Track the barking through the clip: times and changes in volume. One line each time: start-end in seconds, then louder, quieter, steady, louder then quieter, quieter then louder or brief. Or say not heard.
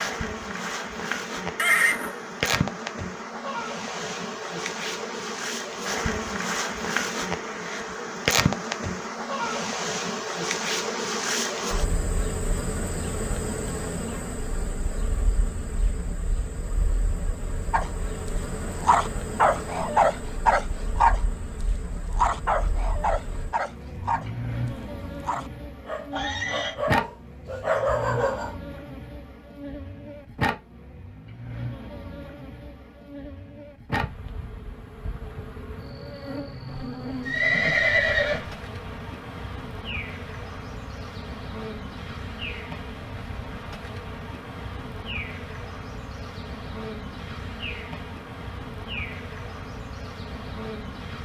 17.7-28.6 quieter then louder.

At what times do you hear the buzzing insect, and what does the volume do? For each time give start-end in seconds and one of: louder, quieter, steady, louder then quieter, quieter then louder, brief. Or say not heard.
0.0-51.2 quieter.